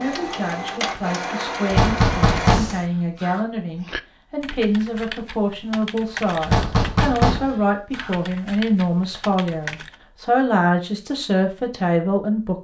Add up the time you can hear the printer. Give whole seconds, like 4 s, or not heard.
3 s.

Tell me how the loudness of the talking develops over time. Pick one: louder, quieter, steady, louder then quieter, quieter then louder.
louder.